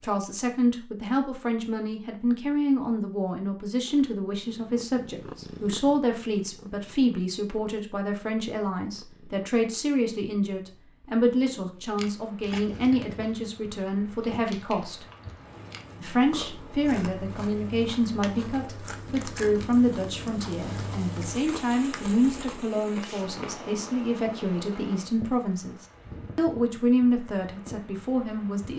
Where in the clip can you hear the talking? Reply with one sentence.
The talking can be heard from 0.0 to 15.1 s, from 16.0 to 25.8 s and from 26.4 to 28.7 s.